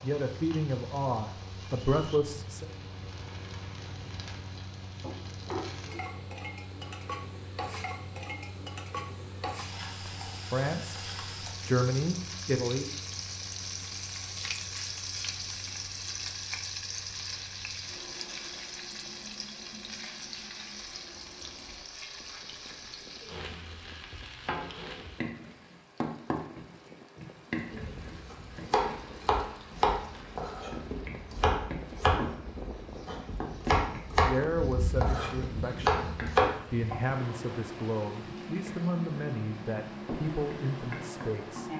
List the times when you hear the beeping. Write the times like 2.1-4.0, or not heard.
not heard.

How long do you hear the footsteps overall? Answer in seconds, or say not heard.
not heard.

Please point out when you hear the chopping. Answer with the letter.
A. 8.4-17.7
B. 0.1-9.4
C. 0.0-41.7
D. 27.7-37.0
D.